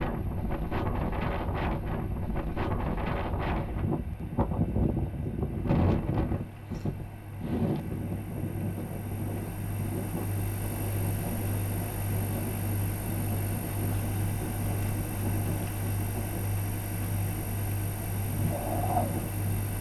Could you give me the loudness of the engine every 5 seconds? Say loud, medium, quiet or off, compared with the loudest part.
medium, medium, loud, loud.